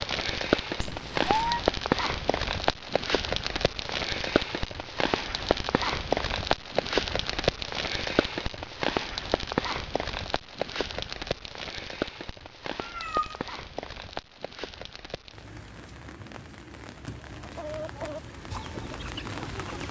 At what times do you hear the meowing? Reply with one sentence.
You can hear the meowing from 0.8 to 1.6 s and from 12.8 to 13.4 s.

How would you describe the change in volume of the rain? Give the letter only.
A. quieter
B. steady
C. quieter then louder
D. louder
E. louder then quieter
A.